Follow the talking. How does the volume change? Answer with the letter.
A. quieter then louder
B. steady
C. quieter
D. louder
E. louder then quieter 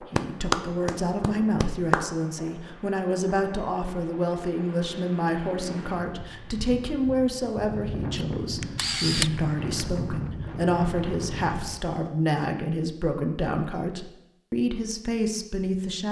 B.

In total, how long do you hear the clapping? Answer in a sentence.
The clapping can be heard for 2 seconds in total.